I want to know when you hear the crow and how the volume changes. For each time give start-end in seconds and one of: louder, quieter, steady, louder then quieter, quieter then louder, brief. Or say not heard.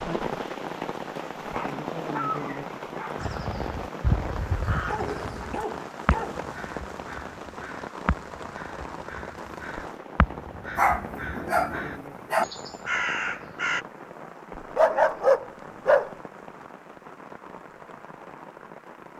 3.2-13.8 quieter then louder.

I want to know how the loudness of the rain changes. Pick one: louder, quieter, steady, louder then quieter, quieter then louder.
quieter.